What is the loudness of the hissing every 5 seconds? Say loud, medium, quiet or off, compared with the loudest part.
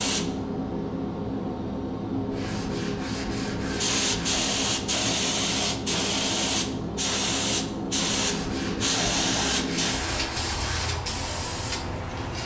loud, loud, medium.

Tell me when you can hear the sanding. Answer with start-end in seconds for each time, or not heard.
2.3-4.5, 8.1-11.0.